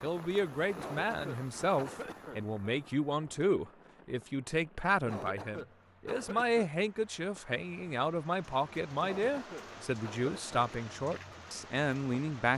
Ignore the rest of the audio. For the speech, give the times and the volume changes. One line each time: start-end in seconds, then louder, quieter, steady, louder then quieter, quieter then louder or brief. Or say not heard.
0.0-12.5 steady.